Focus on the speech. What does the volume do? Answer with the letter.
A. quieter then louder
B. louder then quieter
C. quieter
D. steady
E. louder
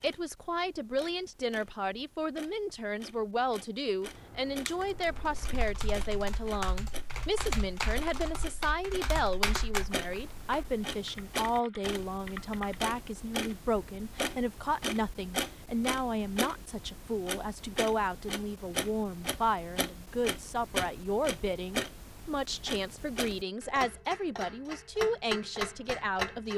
D.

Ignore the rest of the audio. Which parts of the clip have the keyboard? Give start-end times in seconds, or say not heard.
5.0-12.9.